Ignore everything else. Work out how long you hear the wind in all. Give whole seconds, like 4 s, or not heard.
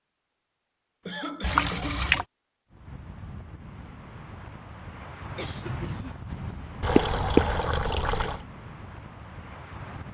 7 s.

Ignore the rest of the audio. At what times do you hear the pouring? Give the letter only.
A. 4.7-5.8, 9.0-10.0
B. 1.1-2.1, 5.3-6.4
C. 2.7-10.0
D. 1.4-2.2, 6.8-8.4
D.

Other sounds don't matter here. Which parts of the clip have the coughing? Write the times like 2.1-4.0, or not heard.
1.1-2.1, 5.3-6.4.